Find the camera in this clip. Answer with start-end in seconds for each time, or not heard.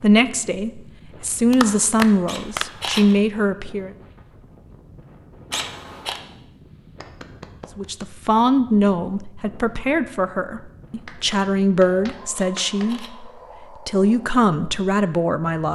2.2-3.2, 5.5-6.2, 12.3-13.2.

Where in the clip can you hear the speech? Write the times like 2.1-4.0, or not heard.
0.0-3.9, 7.8-15.6.